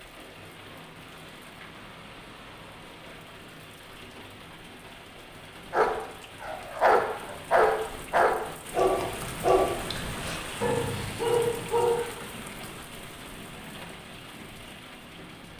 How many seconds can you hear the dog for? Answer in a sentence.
The dog can be heard for 6 seconds in total.